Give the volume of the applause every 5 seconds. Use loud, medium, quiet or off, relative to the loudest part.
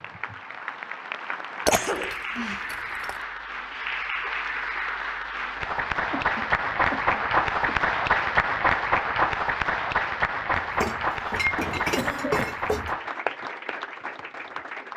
medium, loud, medium.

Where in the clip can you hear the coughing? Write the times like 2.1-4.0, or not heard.
1.7-2.6, 6.1-7.8, 11.7-12.6.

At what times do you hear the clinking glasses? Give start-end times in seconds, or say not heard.
1.6-3.1, 10.6-12.9.